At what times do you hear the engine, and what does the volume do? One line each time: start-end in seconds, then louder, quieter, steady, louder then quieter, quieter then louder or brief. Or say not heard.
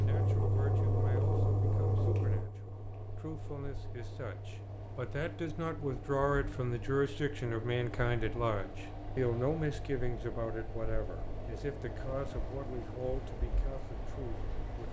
0.0-14.8 quieter.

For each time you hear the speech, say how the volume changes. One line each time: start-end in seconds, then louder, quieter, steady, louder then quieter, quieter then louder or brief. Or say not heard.
0.0-14.8 louder then quieter.